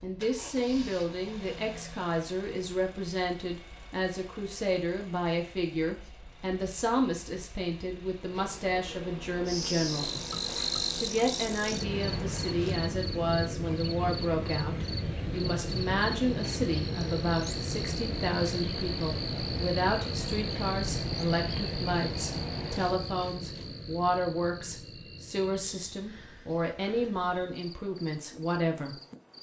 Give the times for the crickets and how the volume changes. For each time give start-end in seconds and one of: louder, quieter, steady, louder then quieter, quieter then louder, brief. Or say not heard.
9.4-29.3 quieter.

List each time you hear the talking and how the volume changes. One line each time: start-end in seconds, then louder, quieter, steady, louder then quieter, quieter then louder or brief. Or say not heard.
0.0-10.1 steady
10.9-28.9 steady.